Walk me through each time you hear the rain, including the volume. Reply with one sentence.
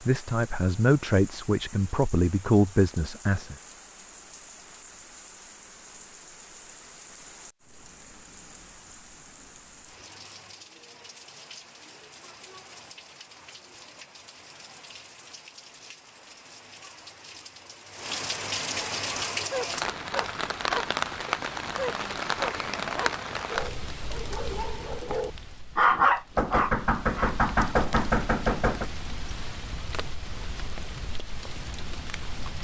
You can hear the rain from 0.0 to 32.5 s, getting louder then quieter.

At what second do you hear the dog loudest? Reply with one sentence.
The loudest moment of the dog is at 26 seconds.